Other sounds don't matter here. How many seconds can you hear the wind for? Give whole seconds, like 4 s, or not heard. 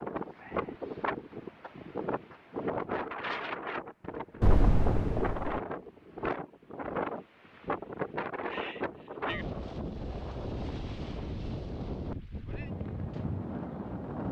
14 s.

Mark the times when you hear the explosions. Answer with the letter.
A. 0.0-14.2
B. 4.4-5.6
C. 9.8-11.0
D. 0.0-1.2
B.